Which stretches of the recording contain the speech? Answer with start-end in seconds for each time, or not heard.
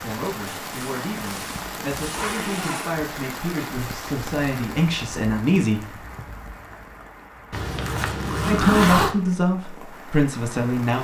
0.0-6.0, 8.4-10.9.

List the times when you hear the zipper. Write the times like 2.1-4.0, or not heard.
0.5-3.0, 7.5-9.2.